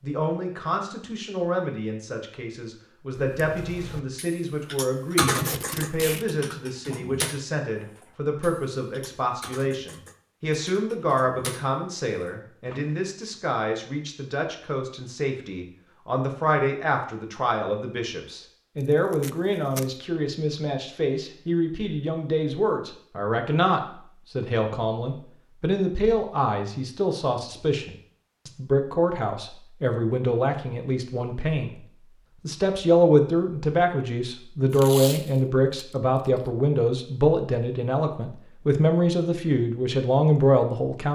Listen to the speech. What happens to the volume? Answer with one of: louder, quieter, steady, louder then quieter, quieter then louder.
louder.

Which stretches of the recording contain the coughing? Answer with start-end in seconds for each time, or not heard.
not heard.